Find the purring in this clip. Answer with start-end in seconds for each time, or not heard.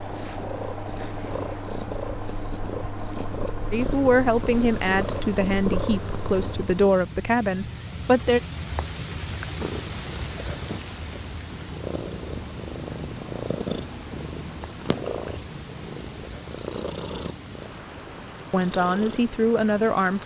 0.0-7.0, 9.4-20.2.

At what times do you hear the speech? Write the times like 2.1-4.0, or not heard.
3.7-8.4, 18.5-20.2.